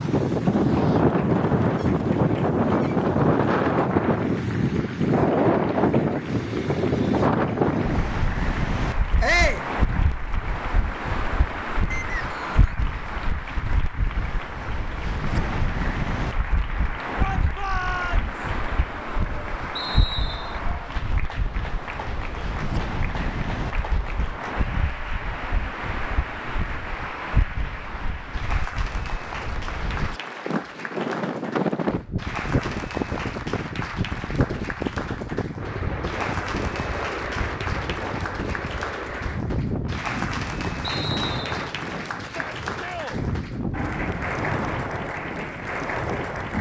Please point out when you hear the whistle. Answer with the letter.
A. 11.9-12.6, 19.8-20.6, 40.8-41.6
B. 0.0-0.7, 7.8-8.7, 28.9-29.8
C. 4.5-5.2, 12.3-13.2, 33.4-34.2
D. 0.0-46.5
A.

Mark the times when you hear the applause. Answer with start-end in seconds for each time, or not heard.
0.0-46.5.